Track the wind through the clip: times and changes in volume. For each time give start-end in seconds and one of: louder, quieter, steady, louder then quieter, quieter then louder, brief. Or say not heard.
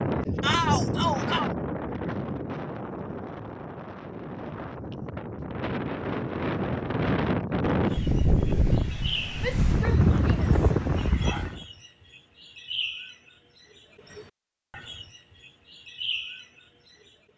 0.0-11.7 quieter then louder.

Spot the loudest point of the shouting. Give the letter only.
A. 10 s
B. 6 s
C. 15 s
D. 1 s
D.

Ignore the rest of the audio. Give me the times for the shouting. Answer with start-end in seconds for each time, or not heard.
0.4-1.5, 9.4-10.6.